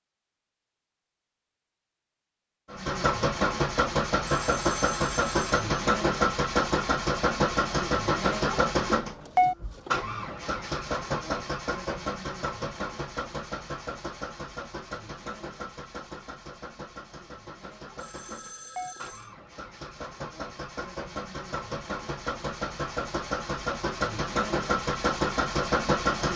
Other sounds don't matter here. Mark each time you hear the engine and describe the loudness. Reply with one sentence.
The engine can be heard from 2.7 to 26.3 s, getting quieter then louder.